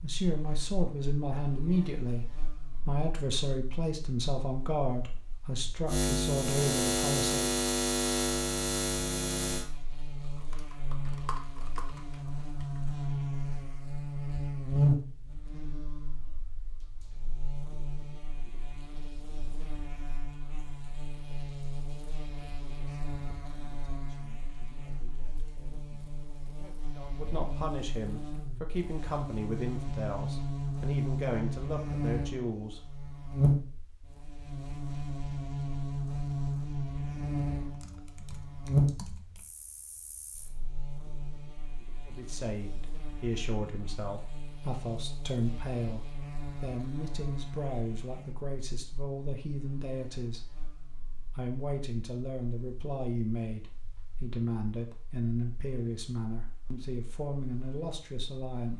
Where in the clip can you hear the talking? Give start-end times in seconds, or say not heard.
0.0-7.5, 22.4-32.8, 42.0-50.4, 51.4-58.7.